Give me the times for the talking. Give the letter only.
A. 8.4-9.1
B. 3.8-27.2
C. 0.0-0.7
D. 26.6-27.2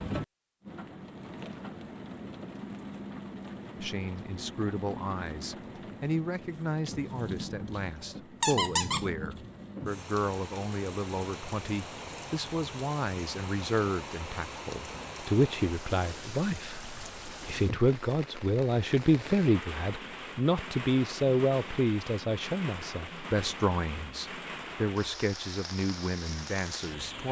B.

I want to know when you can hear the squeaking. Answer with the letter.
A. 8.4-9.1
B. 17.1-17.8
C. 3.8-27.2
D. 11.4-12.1
A.